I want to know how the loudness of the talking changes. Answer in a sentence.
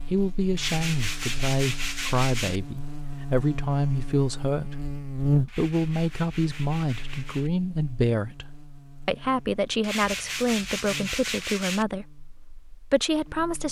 The volume of the talking stays about the same.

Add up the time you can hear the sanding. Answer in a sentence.
You can hear the sanding for 6 seconds altogether.